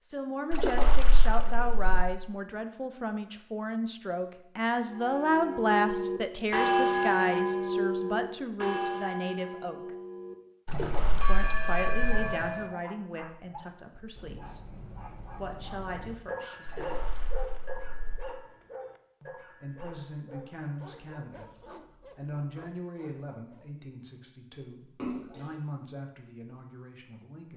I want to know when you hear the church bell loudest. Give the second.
7 s.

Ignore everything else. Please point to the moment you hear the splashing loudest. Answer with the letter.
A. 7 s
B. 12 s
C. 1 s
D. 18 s
C.